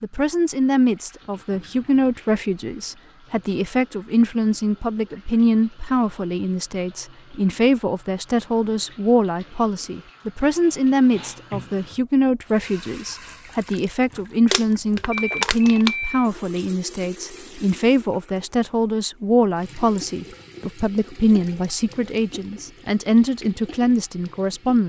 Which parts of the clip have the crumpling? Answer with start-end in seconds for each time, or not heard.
14.5-15.9.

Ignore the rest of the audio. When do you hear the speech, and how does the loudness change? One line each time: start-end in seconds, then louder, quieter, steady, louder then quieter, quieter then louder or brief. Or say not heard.
0.0-24.8 steady.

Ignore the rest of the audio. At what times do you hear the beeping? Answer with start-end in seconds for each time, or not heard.
15.1-16.3.